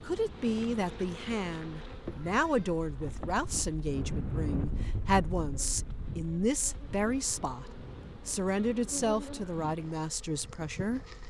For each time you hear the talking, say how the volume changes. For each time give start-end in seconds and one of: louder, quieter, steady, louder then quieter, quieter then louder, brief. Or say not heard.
0.1-11.0 steady.